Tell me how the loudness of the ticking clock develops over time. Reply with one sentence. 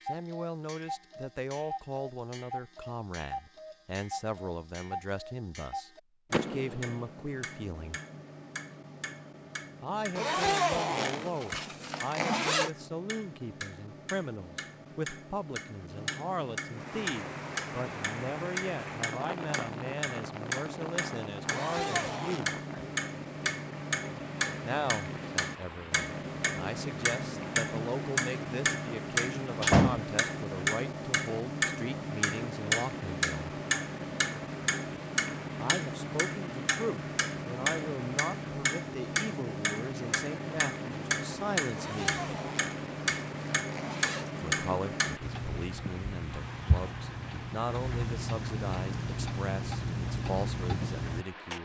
The volume of the ticking clock goes up.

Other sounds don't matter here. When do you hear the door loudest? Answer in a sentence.
The volume of the door peaks at 30 seconds.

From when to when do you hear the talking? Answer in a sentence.
You can hear the talking from 0.1 to 8.0 s, from 9.8 to 22.6 s, from 24.6 to 33.5 s, from 35.5 to 42.2 s and from 44.4 to 51.5 s.